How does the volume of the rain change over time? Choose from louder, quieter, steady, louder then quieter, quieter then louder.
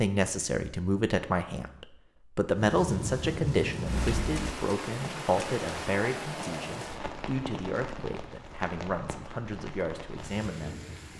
quieter.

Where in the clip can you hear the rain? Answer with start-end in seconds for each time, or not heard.
2.5-11.1.